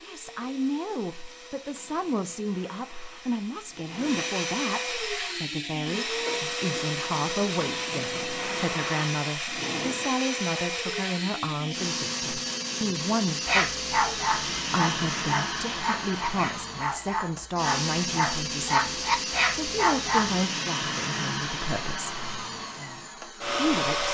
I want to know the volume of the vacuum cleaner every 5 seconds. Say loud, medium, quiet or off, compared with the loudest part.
medium, loud, loud, loud, loud.